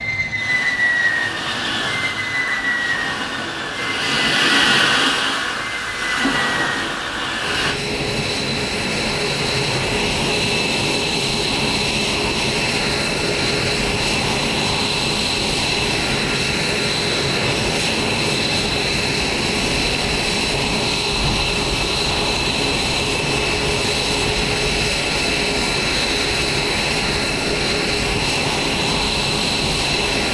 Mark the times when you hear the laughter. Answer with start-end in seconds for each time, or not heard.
not heard.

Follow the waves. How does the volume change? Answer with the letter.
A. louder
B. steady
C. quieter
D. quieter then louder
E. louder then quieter
C.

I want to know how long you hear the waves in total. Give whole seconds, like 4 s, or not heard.
30 s.